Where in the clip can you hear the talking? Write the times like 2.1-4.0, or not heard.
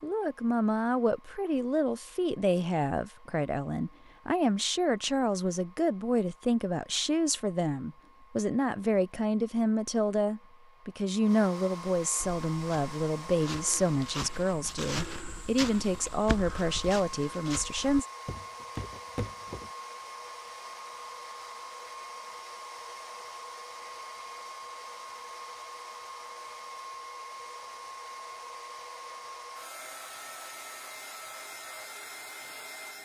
0.0-18.1.